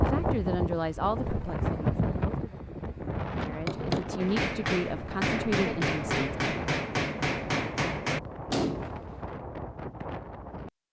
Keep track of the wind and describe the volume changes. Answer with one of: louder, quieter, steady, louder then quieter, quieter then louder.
quieter.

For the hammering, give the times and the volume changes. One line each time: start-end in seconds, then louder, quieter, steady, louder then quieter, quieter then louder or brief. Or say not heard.
3.4-9.0 steady.